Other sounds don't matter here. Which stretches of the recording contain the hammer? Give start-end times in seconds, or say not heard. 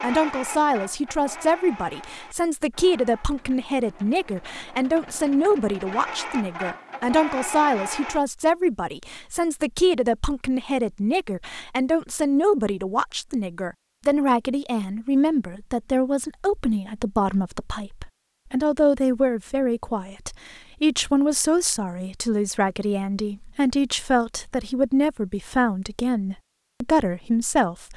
not heard.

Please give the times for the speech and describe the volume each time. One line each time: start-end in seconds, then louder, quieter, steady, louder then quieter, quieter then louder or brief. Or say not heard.
0.0-27.9 steady.